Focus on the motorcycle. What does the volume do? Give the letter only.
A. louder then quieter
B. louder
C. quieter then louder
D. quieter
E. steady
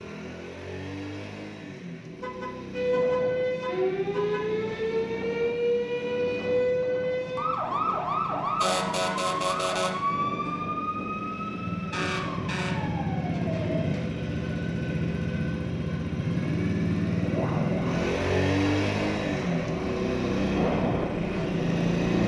B.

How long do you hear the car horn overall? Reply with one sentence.
You can hear the car horn for 2 seconds altogether.